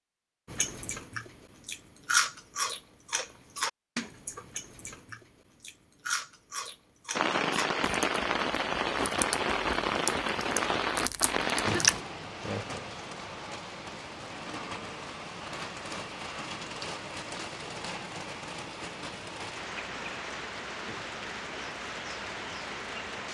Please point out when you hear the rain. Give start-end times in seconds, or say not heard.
7.2-23.2.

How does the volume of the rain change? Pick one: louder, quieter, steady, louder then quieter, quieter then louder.
quieter.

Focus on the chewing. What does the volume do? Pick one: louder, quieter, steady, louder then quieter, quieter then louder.
quieter then louder.